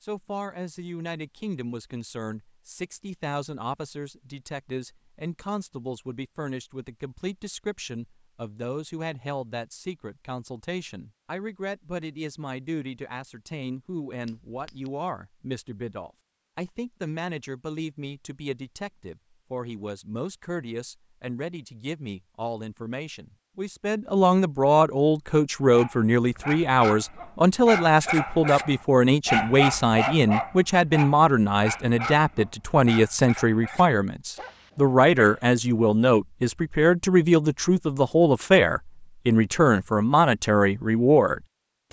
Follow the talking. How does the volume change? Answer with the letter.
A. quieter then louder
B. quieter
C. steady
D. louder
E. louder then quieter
D.